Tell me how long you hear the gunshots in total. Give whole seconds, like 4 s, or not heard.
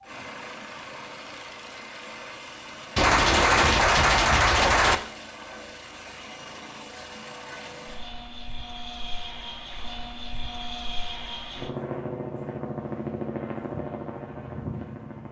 2 s.